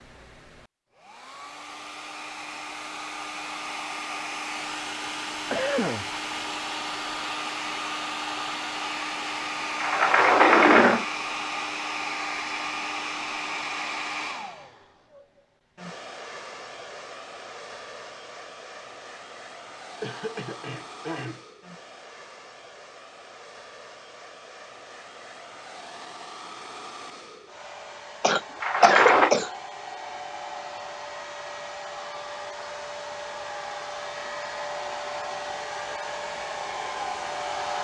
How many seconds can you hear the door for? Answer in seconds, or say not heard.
2 s.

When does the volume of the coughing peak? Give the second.
29 s.